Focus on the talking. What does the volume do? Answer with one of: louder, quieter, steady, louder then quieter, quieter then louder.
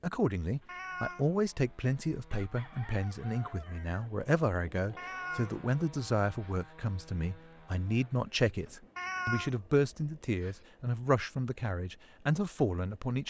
steady.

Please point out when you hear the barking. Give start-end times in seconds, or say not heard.
not heard.